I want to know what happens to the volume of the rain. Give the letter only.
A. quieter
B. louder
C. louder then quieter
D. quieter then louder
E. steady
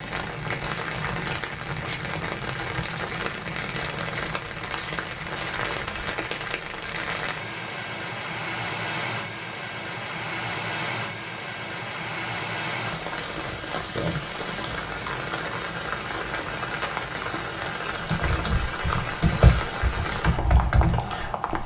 E.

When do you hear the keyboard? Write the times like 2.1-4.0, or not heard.
17.9-21.6.